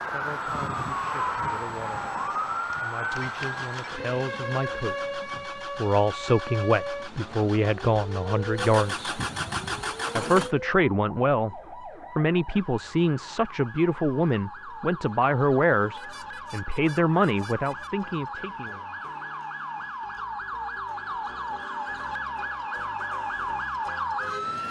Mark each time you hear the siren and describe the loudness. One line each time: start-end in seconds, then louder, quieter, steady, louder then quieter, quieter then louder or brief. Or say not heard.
0.0-24.6 quieter then louder.